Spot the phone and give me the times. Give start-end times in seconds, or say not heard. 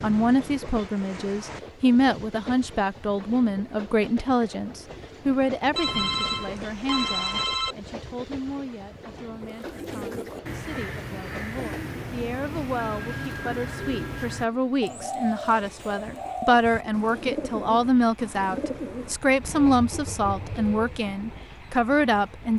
5.8-7.8, 12.8-14.3.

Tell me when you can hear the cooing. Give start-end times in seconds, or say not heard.
9.4-21.1.